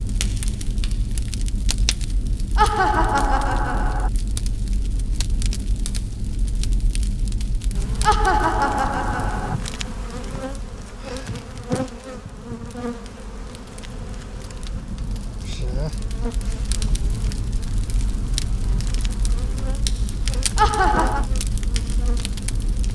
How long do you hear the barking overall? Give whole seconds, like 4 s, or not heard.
not heard.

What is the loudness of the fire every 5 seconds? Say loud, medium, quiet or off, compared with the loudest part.
loud, loud, quiet, loud, loud.